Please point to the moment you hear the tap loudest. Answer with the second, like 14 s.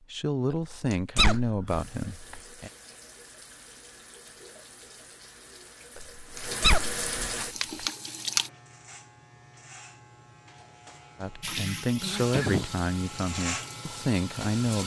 8 s.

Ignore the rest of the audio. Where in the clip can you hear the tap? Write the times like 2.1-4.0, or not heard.
1.6-8.5, 11.4-14.8.